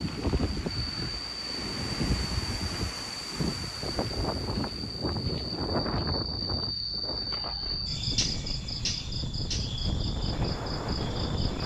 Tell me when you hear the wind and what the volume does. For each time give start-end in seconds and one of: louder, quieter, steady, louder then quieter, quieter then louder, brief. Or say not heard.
0.0-11.6 quieter then louder.